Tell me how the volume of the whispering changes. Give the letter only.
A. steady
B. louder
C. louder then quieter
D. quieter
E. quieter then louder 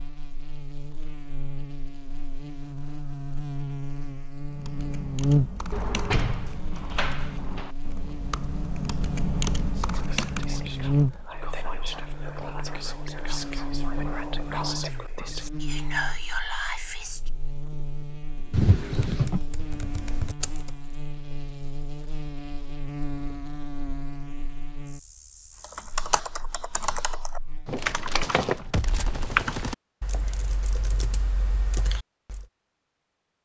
B.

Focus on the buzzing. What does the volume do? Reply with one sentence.
The volume of the buzzing goes down.